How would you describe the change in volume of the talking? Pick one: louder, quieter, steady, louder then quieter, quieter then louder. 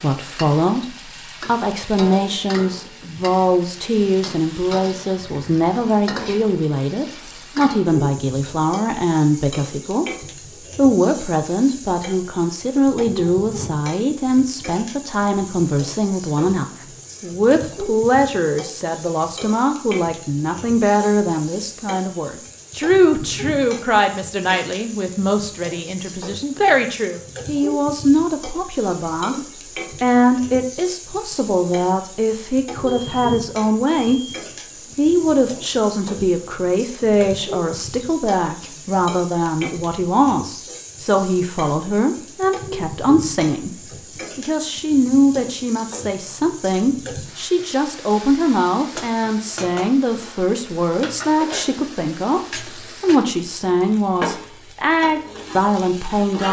steady.